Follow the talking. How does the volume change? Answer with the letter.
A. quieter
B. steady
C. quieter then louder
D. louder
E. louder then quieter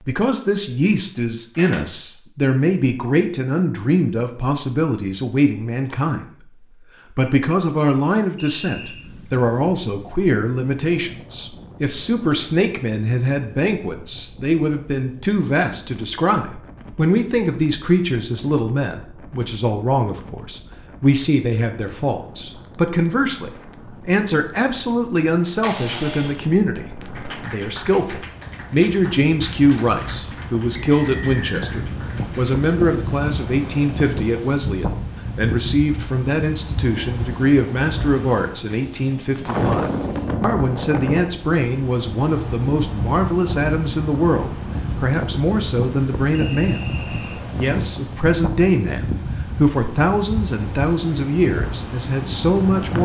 B.